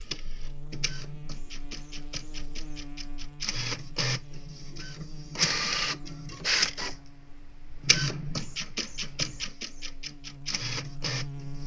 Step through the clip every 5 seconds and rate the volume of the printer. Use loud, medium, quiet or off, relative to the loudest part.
medium, loud, medium.